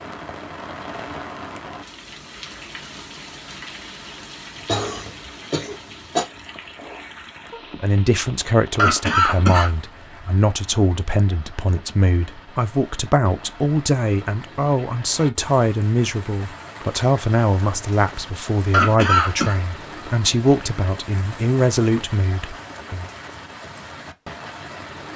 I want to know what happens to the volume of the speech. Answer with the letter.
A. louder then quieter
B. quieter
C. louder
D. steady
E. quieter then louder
D.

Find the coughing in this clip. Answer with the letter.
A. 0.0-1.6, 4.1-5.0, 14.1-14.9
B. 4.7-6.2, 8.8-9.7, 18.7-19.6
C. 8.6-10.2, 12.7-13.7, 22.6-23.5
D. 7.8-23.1
B.